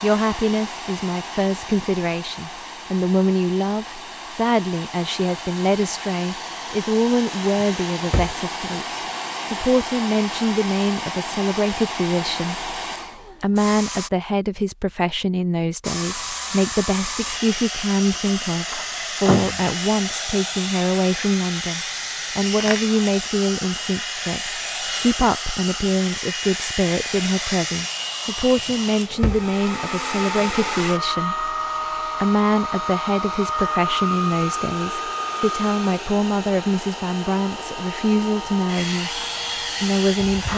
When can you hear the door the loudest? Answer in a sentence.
The volume of the door peaks at 19 seconds.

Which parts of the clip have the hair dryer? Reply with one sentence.
The hair dryer can be heard from 0.0 to 14.1 s and from 15.8 to 40.5 s.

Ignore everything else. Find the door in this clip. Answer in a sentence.
The door can be heard from 7.6 to 8.3 s, from 18.1 to 19.6 s and from 28.6 to 29.5 s.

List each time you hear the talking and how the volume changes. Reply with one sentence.
The talking can be heard from 0.0 to 12.7 s, at a steady volume; from 13.4 to 39.2 s, at a steady volume; and briefly from 39.8 to 40.5 s.